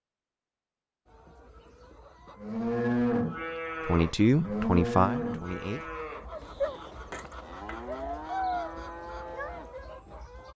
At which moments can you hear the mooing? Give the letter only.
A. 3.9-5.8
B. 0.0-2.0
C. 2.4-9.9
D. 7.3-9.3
C.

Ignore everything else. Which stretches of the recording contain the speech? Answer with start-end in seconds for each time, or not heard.
3.9-5.8.